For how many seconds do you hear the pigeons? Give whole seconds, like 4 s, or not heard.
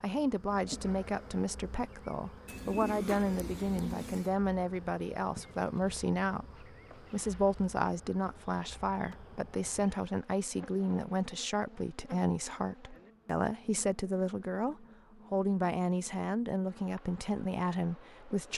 2 s.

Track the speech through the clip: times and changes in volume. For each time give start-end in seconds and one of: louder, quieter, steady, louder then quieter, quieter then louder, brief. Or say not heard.
0.0-18.5 steady.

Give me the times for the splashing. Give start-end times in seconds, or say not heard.
not heard.